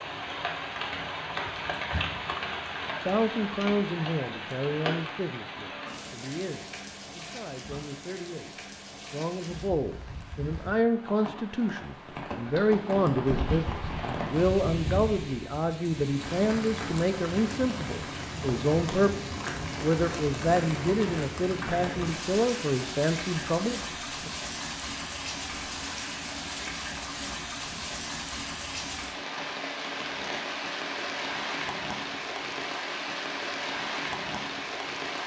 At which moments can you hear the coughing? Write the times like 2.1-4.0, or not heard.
not heard.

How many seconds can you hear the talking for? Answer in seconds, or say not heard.
21 s.